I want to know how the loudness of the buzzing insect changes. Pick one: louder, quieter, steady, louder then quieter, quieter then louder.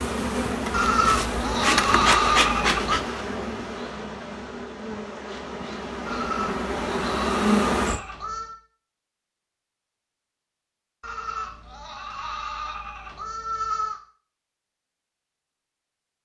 quieter then louder.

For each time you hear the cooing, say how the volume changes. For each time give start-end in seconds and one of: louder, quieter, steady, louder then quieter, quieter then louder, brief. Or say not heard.
not heard.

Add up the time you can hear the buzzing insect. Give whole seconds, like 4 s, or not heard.
8 s.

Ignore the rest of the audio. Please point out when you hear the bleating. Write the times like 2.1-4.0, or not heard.
0.7-3.0, 6.0-8.6, 11.0-14.0.